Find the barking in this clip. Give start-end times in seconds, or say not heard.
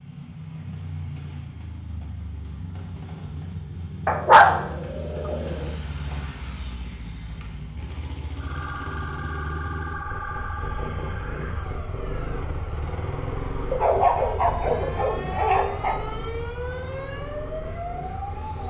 4.0-5.7, 13.7-16.0.